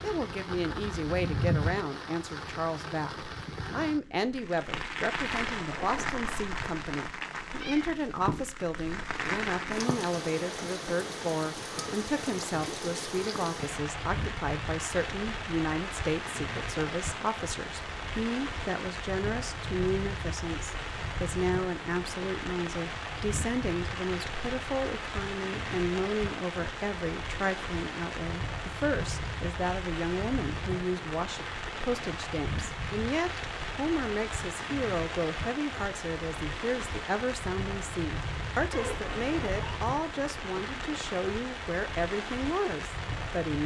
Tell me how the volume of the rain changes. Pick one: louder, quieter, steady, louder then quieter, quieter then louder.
steady.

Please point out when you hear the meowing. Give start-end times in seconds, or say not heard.
7.5-8.4, 38.7-39.8.